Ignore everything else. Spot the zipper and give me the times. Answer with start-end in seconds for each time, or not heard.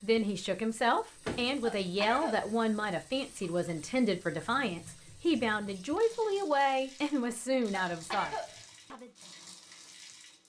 not heard.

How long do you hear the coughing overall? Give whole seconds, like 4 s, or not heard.
2 s.